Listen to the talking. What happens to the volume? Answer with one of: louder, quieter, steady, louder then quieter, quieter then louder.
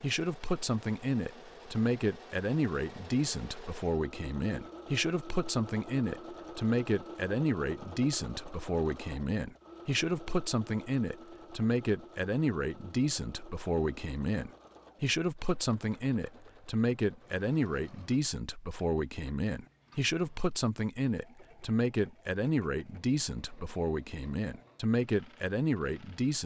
steady.